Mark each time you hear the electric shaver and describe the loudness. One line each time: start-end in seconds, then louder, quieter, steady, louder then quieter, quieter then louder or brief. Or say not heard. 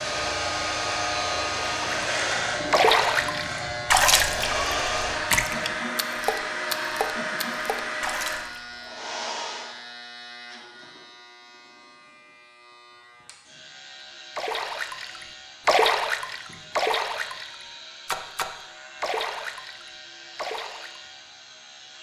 0.0-21.9 quieter.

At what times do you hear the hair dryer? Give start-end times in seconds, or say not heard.
0.0-9.8.